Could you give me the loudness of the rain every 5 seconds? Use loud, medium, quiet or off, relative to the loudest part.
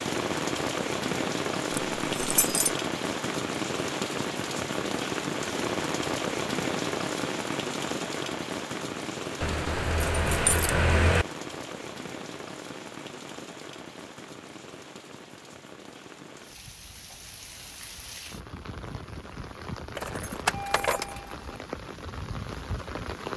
loud, loud, medium, quiet, medium.